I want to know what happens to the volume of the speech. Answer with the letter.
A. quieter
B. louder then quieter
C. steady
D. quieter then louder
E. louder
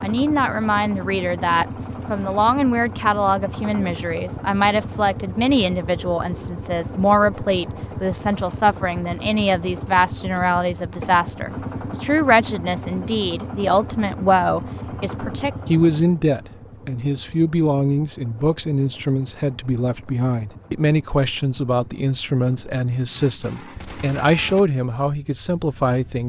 C.